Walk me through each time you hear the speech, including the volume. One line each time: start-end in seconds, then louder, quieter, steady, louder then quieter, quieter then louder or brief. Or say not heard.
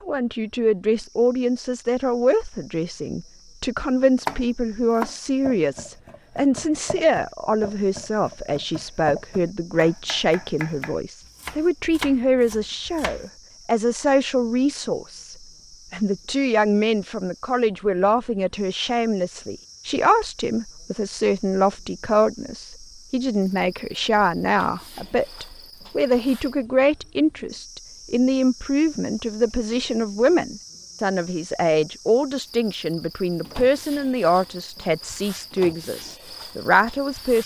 0.0-37.4 steady.